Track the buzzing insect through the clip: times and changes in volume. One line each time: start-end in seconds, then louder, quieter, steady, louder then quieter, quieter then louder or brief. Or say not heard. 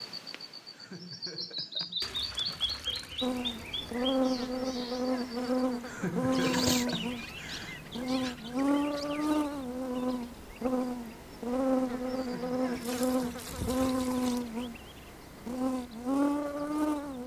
3.2-17.2 steady.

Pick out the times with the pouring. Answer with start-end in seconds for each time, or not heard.
2.0-4.0, 6.2-6.8, 12.7-14.4.